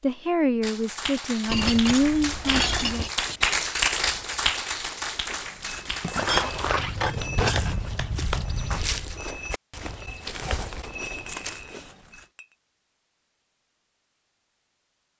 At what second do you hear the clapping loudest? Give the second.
4 s.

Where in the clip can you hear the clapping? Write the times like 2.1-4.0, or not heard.
0.6-8.8.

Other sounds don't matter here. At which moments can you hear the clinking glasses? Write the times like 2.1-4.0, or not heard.
1.4-3.1, 6.0-7.9, 11.2-12.6.